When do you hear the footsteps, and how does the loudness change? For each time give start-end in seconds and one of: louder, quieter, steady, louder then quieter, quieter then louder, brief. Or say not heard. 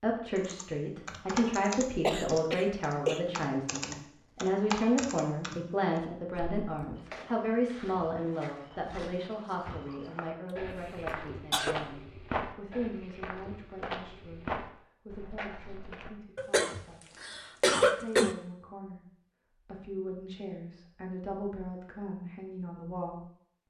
7.0-16.1 louder.